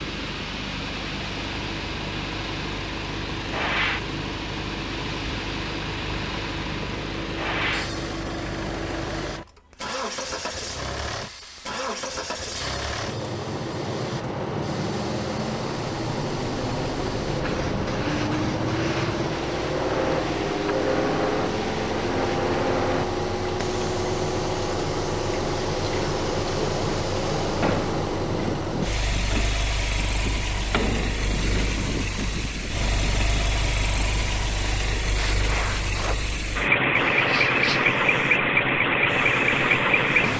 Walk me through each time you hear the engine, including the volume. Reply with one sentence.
The engine can be heard from 0.0 to 40.3 s, getting louder.